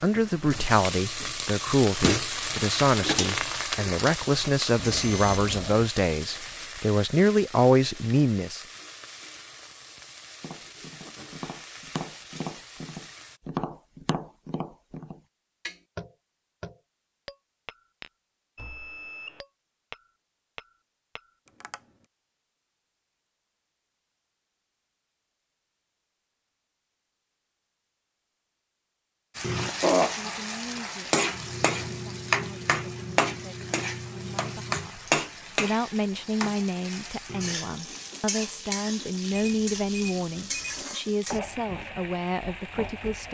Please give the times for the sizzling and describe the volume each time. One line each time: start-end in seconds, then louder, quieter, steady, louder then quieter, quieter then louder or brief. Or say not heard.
0.0-13.4 quieter
29.4-43.2 quieter.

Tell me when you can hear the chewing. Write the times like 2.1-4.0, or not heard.
not heard.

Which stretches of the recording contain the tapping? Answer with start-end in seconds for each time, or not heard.
10.4-22.1.